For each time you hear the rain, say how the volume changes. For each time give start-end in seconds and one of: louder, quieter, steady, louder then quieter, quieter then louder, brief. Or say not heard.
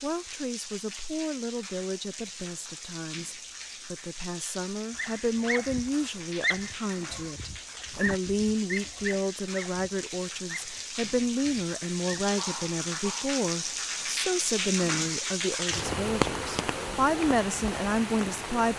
0.0-18.7 louder.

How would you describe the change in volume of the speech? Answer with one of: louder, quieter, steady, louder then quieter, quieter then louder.
louder.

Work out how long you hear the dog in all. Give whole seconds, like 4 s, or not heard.
8 s.